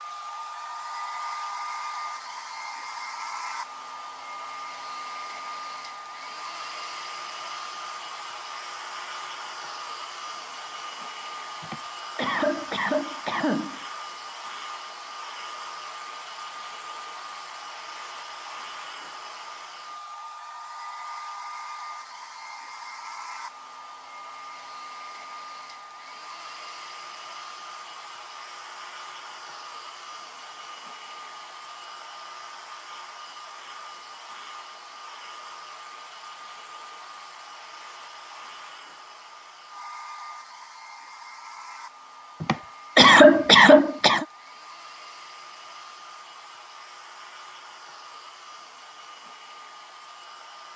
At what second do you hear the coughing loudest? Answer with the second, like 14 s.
43 s.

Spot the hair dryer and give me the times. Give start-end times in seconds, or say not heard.
0.0-50.7.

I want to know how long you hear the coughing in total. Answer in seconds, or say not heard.
4 s.